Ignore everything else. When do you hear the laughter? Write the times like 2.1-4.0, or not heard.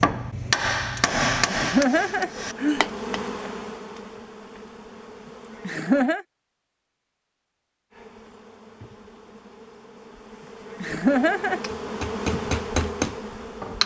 1.5-2.9, 5.7-6.2, 10.8-11.6.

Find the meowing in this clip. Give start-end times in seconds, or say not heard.
not heard.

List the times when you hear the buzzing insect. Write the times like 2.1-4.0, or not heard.
1.9-6.1, 7.9-13.8.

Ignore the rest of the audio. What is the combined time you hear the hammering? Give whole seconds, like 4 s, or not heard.
5 s.